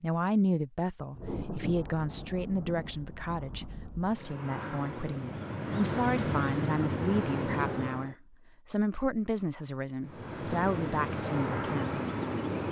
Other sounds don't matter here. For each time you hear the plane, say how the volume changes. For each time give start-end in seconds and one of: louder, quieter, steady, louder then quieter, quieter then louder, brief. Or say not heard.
4.0-8.2 louder
10.0-12.6 brief.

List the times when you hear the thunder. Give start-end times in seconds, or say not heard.
1.1-4.2.